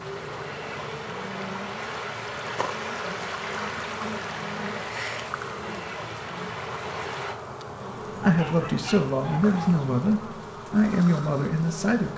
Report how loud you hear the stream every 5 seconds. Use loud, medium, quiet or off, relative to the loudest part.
loud, loud, off.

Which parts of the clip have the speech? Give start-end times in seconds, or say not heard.
8.2-12.1.